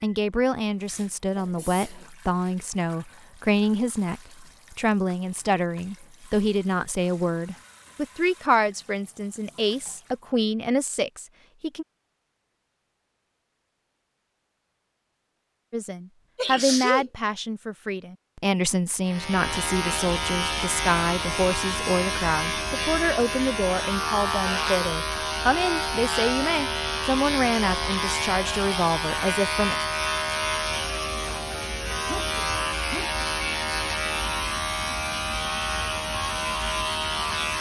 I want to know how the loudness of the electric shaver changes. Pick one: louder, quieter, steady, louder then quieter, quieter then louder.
steady.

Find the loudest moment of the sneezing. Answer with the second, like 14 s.
17 s.